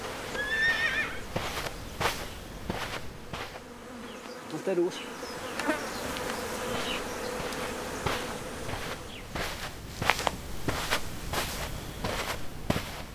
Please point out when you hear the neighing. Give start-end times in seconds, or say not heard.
0.3-1.2.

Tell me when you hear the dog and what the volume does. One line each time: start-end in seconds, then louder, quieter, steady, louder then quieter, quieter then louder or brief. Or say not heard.
not heard.